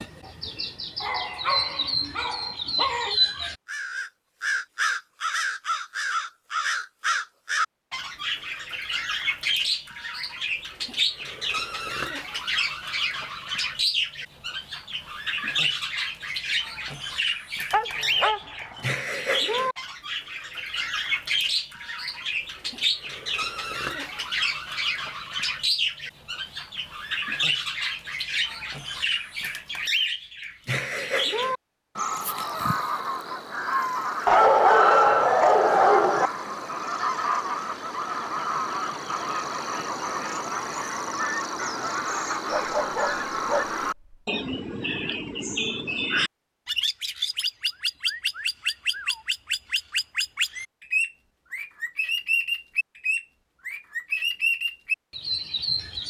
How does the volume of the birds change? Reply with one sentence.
The volume of the birds stays about the same.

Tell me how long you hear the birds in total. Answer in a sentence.
You can hear the birds for 56 seconds altogether.